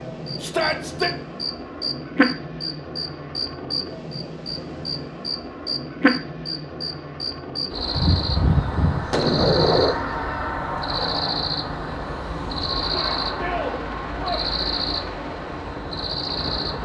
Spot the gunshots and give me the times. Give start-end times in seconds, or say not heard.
8.0-9.9.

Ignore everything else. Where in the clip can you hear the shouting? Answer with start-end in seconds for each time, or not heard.
0.4-1.1, 12.8-14.5.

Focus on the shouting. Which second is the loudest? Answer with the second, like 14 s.
1 s.